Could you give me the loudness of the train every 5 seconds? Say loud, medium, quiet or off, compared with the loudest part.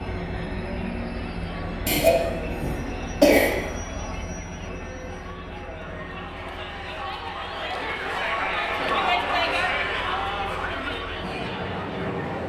loud, medium, loud.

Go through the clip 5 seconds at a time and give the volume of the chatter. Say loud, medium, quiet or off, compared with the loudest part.
quiet, loud, loud.